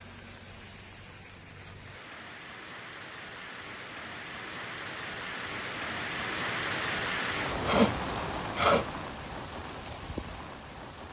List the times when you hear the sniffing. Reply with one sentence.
The sniffing can be heard from 7.6 to 8.8 s.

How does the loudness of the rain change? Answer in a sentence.
The loudness of the rain goes up, then down.